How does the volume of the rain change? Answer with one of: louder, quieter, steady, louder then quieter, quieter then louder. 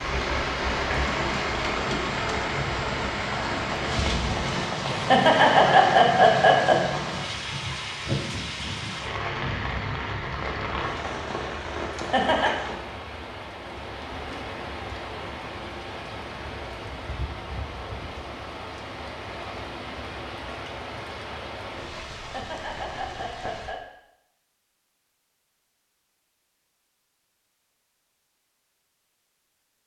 quieter.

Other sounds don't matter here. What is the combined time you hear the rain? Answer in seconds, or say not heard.
24 s.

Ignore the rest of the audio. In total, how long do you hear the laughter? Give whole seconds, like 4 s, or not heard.
4 s.